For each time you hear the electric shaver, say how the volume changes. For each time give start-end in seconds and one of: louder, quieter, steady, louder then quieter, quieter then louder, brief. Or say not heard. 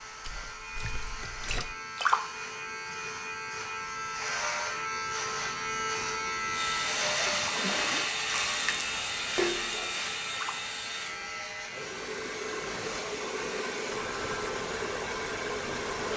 0.0-16.1 louder then quieter.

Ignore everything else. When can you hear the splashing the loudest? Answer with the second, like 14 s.
2 s.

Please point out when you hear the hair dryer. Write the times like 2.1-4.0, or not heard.
6.5-16.1.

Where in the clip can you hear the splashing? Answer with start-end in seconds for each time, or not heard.
0.1-2.2, 7.2-10.6.